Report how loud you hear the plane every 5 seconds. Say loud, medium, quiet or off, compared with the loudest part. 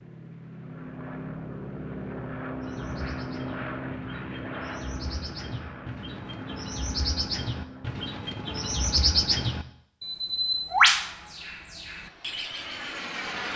loud, medium, loud.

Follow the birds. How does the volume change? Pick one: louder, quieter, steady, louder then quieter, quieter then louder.
louder.